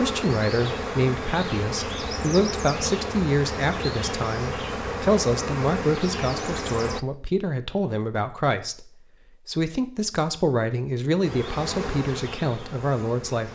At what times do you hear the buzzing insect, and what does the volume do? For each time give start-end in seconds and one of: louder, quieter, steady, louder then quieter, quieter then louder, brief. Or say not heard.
0.0-7.0 steady
11.2-13.5 brief.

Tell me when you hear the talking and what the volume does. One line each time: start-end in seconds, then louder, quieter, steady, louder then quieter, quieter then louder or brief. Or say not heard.
0.0-13.5 steady.